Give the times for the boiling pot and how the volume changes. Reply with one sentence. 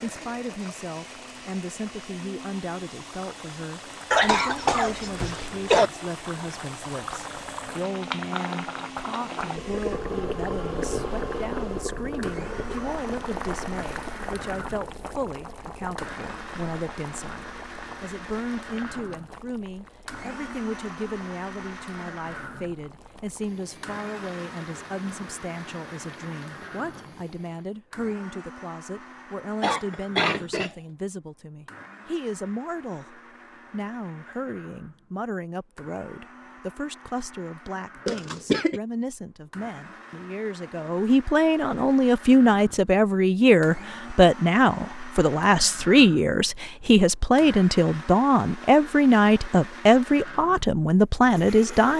You can hear the boiling pot from 0.0 to 27.8 s, getting louder then quieter.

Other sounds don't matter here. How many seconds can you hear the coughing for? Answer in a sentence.
You can hear the coughing for 4 seconds altogether.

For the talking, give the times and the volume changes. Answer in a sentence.
You can hear the talking from 0.0 to 51.9 s, getting louder.